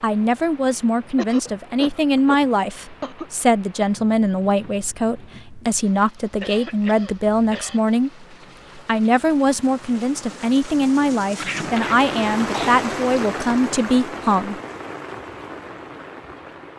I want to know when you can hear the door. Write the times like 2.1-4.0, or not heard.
not heard.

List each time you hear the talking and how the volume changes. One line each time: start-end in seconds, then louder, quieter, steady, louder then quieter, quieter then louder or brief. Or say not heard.
0.0-14.6 steady.